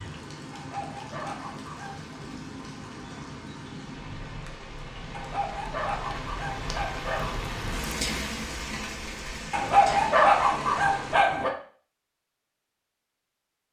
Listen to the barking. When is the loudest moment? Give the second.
10 s.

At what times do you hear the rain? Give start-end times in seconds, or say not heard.
0.0-11.2.